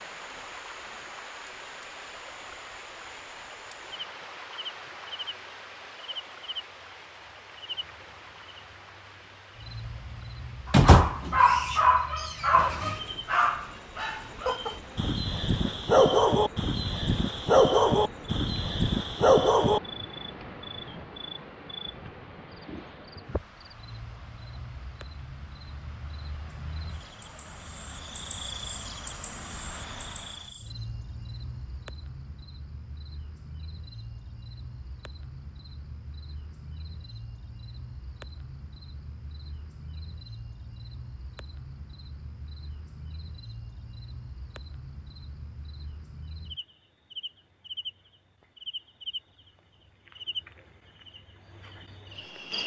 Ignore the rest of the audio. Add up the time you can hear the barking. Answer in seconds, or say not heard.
9 s.